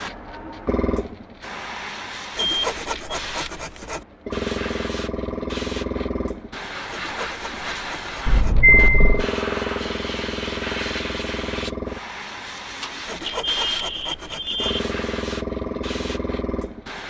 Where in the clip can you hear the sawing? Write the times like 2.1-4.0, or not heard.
2.4-4.0, 6.9-8.6, 13.1-14.8.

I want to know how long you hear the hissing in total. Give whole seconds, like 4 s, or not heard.
17 s.